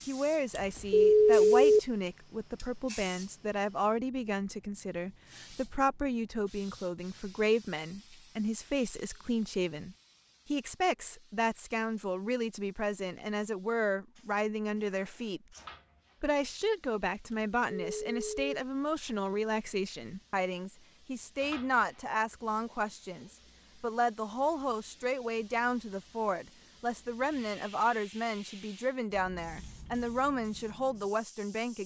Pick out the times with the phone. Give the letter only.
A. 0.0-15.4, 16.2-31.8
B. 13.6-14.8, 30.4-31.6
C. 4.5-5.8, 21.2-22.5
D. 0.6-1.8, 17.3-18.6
D.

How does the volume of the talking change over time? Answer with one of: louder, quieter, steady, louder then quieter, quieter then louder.
steady.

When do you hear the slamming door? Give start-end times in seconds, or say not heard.
not heard.